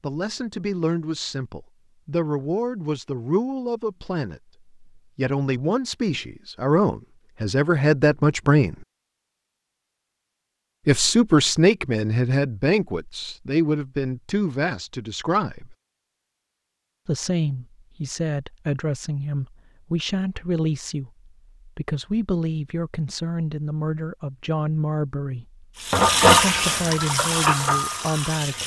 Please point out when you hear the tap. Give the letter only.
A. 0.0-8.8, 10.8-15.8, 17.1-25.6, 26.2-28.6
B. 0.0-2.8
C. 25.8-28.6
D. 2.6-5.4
C.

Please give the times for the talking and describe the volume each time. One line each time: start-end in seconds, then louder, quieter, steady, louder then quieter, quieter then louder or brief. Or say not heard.
0.0-8.8 louder
10.8-15.8 quieter
17.1-25.6 steady
26.2-28.6 brief.